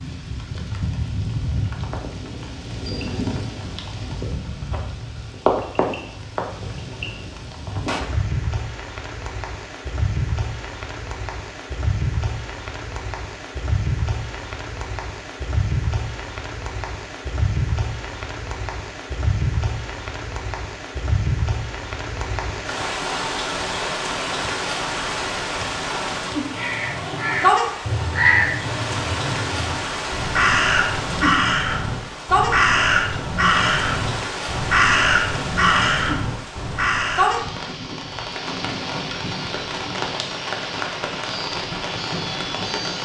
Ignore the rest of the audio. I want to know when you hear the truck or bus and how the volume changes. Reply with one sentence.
The truck or bus can't be heard in this clip.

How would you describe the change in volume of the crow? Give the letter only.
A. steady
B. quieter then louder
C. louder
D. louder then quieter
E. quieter
A.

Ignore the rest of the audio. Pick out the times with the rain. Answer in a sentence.
The rain can be heard from 0.0 to 43.0 s.